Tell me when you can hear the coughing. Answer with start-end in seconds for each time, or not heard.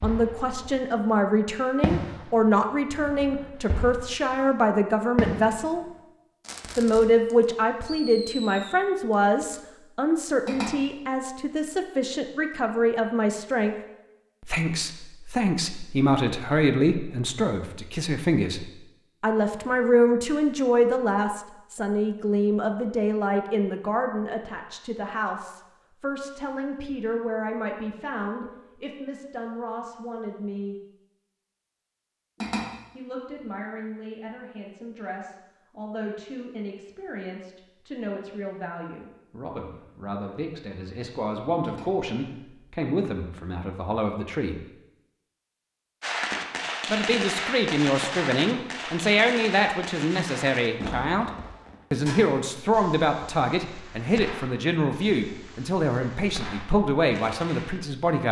not heard.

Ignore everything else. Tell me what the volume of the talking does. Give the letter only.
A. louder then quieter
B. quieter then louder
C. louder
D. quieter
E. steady
B.